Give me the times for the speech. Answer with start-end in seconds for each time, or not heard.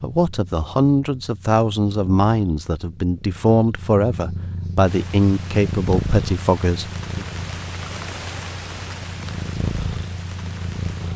0.0-7.2.